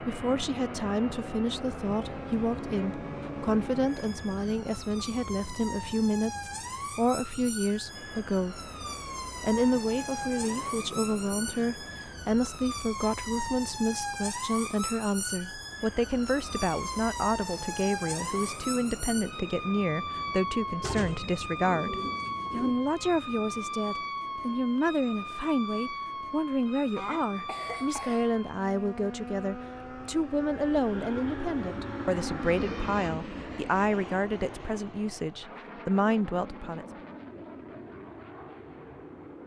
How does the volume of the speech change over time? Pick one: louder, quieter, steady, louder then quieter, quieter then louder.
steady.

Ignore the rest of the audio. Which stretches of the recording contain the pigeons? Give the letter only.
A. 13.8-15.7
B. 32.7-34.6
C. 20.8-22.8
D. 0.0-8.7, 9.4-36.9
C.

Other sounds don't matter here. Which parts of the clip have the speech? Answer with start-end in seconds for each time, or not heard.
0.0-8.7, 9.4-36.9.